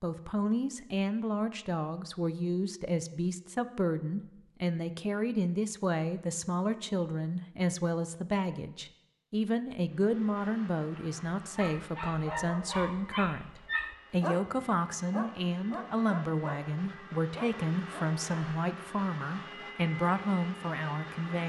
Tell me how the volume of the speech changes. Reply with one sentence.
The volume of the speech stays about the same.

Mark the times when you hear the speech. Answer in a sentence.
The speech can be heard from 0.0 to 21.4 s.